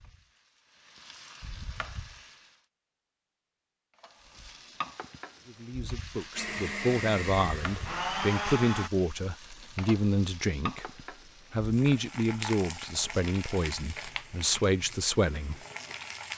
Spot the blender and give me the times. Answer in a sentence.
The blender can be heard from 6.3 to 8.9 s.